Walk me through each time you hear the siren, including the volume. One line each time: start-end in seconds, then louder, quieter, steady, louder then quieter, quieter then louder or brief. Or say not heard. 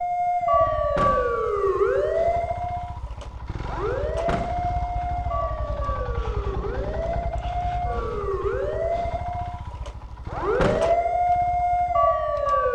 0.0-12.7 quieter then louder.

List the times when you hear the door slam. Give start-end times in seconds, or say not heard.
0.9-1.4, 4.2-4.7, 10.6-11.1.